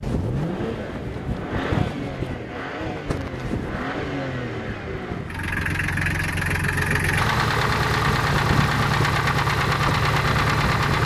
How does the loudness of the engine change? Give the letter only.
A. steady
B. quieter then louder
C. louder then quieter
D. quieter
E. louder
E.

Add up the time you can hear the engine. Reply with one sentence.
The engine can be heard for 11 seconds in total.